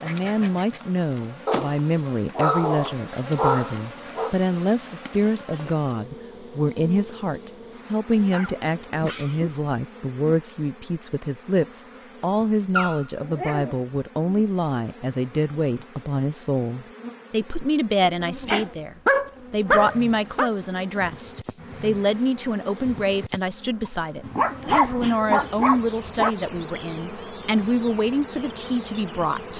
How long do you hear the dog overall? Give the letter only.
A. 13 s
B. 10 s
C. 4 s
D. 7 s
B.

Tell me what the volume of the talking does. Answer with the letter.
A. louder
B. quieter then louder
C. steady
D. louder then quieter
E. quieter
C.